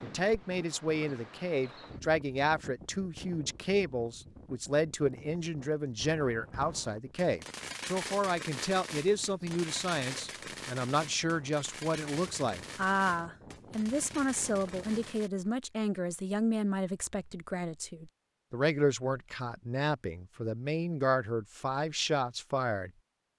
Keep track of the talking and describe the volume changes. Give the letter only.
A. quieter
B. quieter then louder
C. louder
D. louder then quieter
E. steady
E.